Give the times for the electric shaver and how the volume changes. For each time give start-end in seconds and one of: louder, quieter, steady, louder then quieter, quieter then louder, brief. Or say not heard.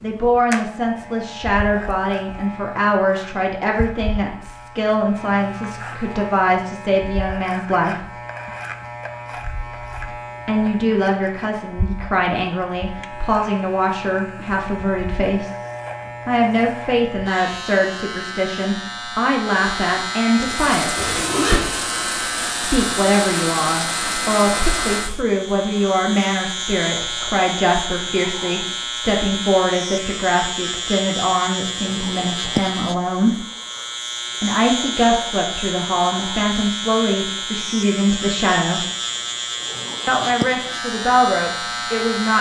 0.0-42.3 louder.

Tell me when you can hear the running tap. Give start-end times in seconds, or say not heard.
20.5-25.2.